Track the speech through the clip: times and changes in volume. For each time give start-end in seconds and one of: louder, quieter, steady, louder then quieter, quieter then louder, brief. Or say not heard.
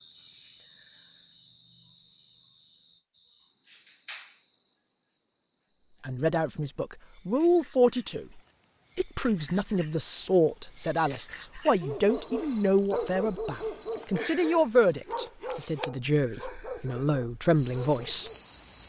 6.0-18.3 steady.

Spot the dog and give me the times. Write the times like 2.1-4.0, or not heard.
11.8-18.4.